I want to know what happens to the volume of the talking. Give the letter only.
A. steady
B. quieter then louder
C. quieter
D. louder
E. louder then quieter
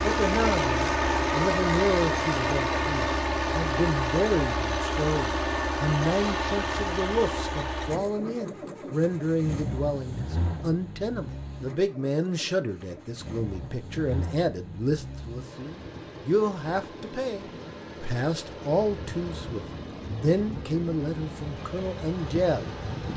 A.